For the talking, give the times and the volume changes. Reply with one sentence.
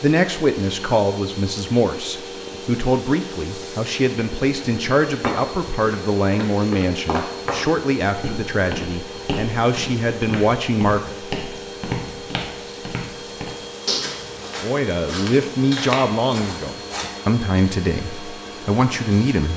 The talking can be heard from 0.0 to 11.2 s, at a steady volume; and from 14.6 to 19.5 s, at a steady volume.